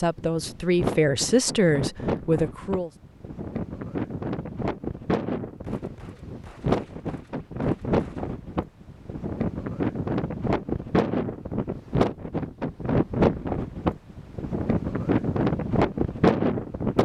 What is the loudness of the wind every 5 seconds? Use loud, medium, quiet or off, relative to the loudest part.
medium, medium, loud, loud.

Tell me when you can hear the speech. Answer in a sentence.
You can hear the speech from 0.0 to 2.9 s.